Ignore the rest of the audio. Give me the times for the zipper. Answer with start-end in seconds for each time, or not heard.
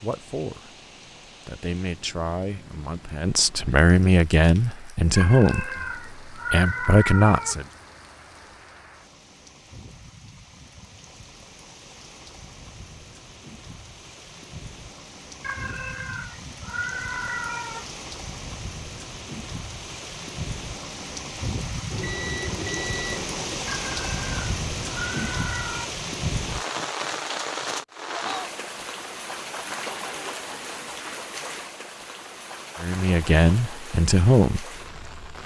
not heard.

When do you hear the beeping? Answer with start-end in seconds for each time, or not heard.
21.9-23.6.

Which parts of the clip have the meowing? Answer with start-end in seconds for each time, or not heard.
5.2-7.7, 15.4-17.9, 23.6-25.9.